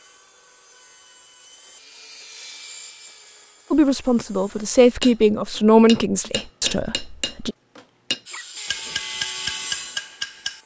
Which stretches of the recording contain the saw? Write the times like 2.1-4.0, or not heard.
0.0-4.8, 8.2-10.6.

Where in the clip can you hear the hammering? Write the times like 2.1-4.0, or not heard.
5.0-10.6.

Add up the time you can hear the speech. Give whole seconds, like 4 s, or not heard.
4 s.